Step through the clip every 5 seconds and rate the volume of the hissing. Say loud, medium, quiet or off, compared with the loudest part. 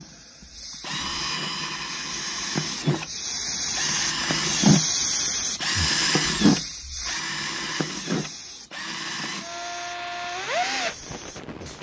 loud, loud, quiet.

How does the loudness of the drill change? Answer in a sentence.
The volume of the drill goes up, then down.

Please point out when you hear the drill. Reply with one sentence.
You can hear the drill from 0.0 to 11.7 s.